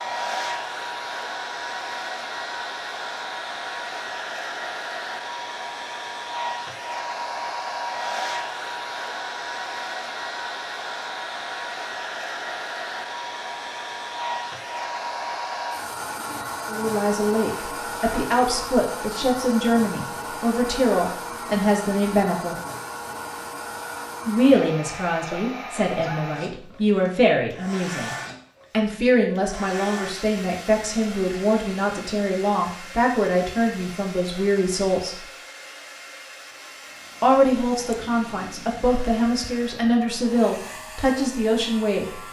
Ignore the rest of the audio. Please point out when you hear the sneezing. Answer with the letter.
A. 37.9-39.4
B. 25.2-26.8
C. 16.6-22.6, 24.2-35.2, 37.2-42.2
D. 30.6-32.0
B.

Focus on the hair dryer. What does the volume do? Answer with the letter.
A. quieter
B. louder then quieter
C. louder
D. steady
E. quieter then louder
A.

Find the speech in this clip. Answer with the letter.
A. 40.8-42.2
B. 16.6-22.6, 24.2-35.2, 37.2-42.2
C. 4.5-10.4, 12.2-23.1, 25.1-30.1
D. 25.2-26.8
B.